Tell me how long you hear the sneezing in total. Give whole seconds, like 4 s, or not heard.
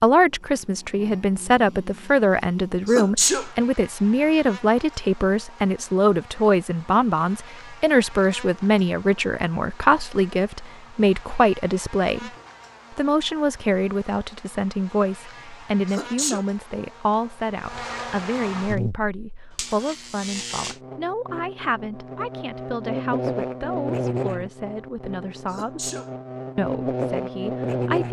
2 s.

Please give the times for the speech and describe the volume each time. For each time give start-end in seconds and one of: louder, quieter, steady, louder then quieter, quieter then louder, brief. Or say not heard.
0.0-12.3 steady
12.9-25.9 quieter
26.6-28.0 brief.